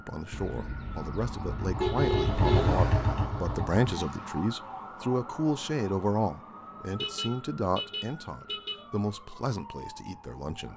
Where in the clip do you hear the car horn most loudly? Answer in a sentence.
The volume of the car horn peaks at 2 seconds.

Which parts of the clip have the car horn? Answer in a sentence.
The car horn can be heard from 0.3 to 2.8 s and from 6.9 to 8.8 s.